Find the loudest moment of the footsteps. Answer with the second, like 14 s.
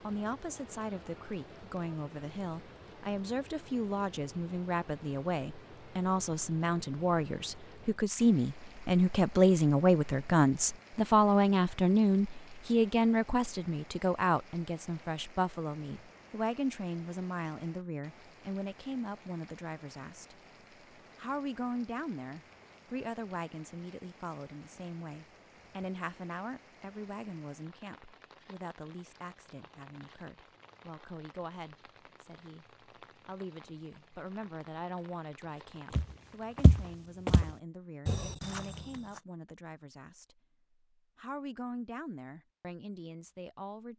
37 s.